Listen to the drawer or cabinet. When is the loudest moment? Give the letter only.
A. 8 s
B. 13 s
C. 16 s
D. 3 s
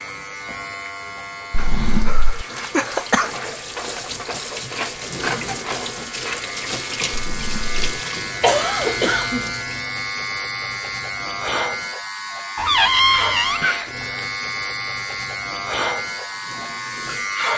B.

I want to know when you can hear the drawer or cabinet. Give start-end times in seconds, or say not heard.
1.5-2.5, 7.2-7.8, 12.6-13.6.